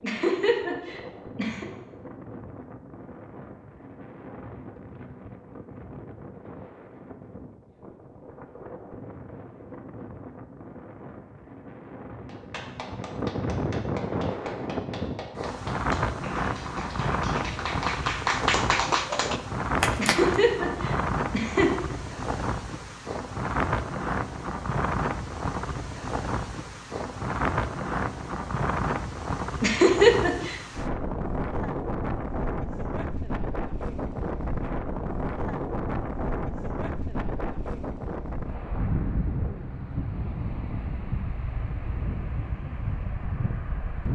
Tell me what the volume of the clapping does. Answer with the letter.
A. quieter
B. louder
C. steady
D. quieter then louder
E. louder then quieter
B.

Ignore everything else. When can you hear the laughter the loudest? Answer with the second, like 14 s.
30 s.